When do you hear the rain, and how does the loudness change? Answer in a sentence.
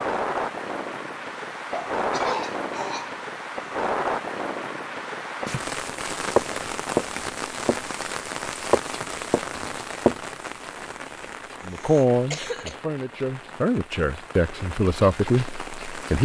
You can hear the rain from 0.0 to 16.1 s, getting quieter.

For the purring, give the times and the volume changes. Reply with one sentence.
You can't hear the purring here.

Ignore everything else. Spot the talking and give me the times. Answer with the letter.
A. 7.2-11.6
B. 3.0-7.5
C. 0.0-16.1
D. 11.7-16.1
D.